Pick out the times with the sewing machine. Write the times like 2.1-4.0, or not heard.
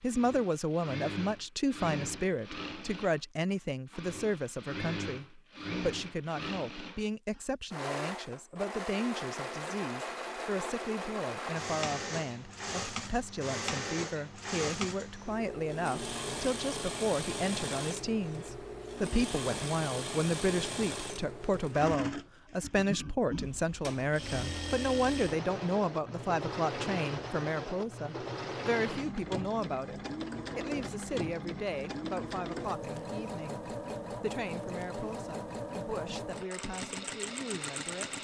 0.0-38.1.